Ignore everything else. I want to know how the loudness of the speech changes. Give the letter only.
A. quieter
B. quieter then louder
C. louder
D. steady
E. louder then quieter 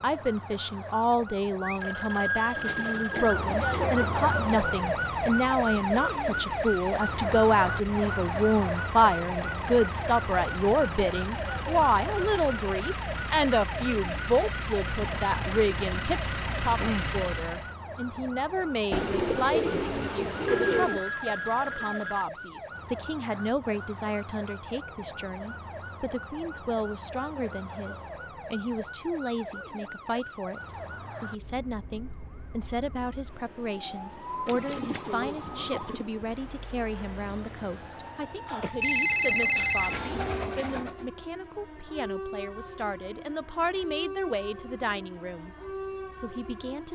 A.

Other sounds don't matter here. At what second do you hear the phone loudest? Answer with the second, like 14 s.
39 s.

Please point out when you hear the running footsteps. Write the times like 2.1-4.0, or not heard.
not heard.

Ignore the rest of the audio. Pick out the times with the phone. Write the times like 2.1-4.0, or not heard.
1.6-3.4, 20.4-22.2, 38.6-40.5.